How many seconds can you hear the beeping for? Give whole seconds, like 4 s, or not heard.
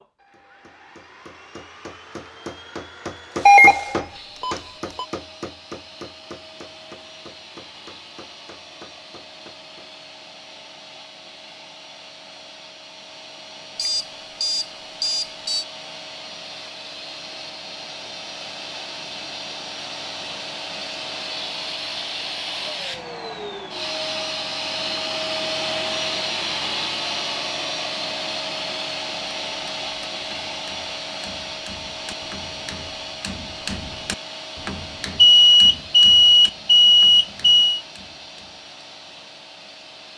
6 s.